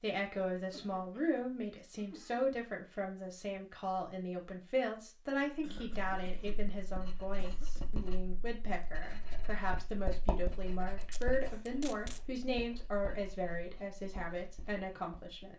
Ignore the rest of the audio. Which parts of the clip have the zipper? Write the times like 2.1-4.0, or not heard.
not heard.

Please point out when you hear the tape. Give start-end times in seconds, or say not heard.
11.0-12.2.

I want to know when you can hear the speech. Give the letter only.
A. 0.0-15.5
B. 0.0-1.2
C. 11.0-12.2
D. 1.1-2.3
A.